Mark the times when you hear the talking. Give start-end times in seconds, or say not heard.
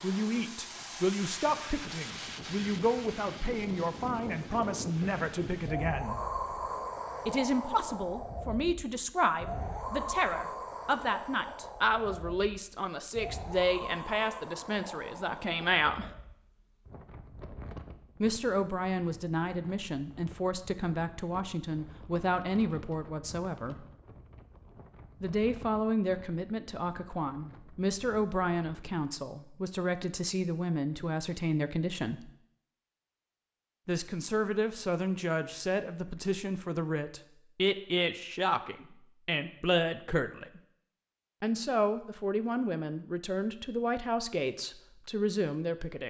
0.0-6.2, 7.2-16.1, 18.2-23.9, 25.2-32.3, 33.9-40.6, 41.4-46.0.